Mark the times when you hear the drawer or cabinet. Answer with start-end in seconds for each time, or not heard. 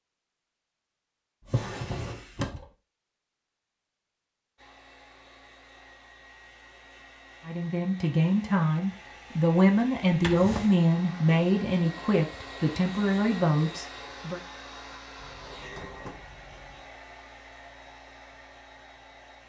1.4-2.7, 10.1-10.8, 15.2-16.9.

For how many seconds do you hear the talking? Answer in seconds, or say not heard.
7 s.